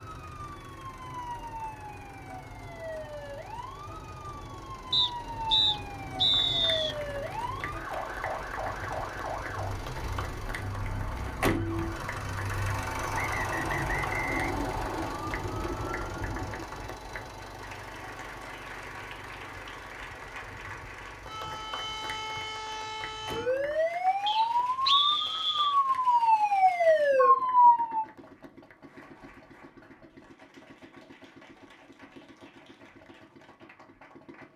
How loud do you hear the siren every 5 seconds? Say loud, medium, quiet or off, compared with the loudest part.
quiet, quiet, quiet, quiet, medium, loud, off.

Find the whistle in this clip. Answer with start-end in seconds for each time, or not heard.
4.9-7.0, 13.1-15.2, 24.2-25.8.